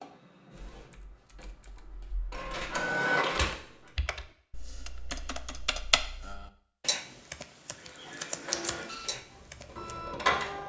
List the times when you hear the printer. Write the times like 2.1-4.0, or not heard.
0.0-3.9, 7.7-10.6.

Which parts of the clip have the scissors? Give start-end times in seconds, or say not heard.
8.1-8.8.